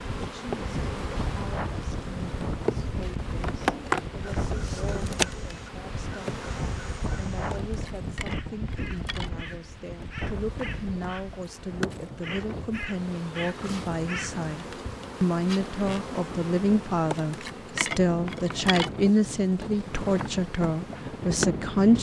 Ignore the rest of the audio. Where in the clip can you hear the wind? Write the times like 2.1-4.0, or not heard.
0.0-21.9.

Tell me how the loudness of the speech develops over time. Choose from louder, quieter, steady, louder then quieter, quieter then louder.
louder.